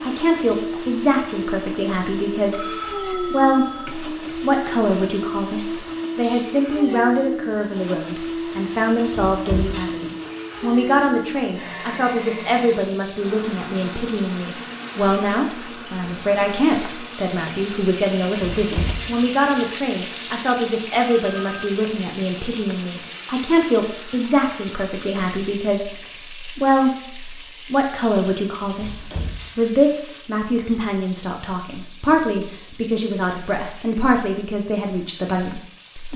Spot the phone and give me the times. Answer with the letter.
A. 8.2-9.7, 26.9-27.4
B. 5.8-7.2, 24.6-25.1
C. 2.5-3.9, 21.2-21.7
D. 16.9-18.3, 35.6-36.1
C.